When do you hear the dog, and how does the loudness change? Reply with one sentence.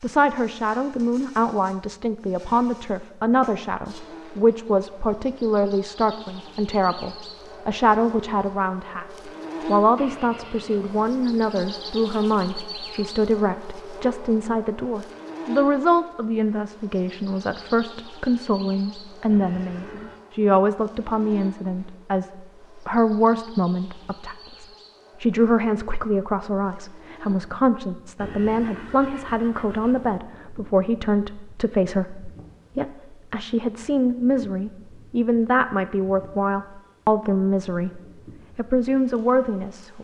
The dog can't be heard in this clip.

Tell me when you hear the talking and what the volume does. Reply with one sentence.
You can hear the talking from 0.0 to 39.9 s, at a steady volume.